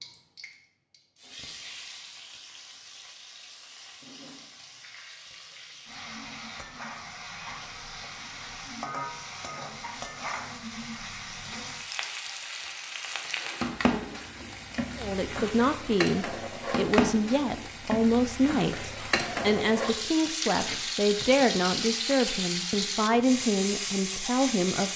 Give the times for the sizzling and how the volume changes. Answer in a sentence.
The sizzling can be heard from 0.0 to 24.9 s, getting louder.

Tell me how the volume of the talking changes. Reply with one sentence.
The loudness of the talking stays about the same.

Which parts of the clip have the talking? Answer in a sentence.
The talking can be heard from 14.9 to 24.9 s.